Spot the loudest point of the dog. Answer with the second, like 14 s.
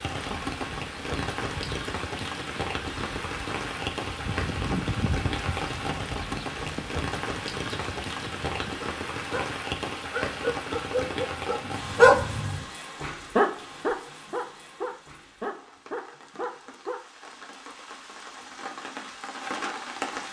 12 s.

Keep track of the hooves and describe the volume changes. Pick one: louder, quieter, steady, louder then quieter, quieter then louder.
louder then quieter.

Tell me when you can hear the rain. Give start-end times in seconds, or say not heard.
0.0-20.2.